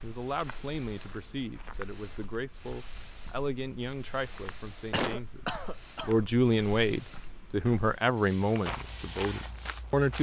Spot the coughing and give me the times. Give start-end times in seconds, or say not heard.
4.9-6.2.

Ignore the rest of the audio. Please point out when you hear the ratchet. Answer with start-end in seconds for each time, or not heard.
not heard.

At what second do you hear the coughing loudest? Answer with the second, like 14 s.
5 s.